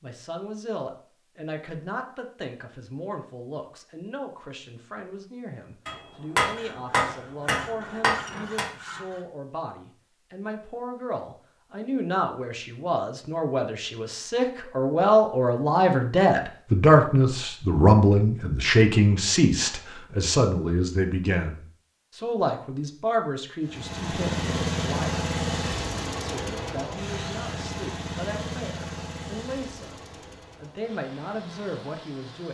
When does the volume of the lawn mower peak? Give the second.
25 s.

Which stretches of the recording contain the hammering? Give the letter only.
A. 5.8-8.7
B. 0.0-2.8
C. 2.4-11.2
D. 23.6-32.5
A.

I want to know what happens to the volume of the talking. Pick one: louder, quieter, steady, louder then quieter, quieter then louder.
louder then quieter.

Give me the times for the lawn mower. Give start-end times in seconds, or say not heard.
23.6-32.5.